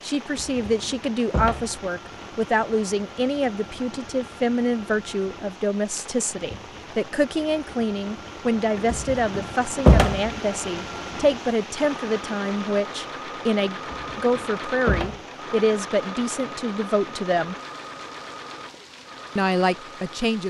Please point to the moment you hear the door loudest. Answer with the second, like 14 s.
10 s.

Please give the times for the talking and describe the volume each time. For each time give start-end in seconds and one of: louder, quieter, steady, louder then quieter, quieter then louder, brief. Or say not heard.
0.0-17.6 steady
19.4-20.4 brief.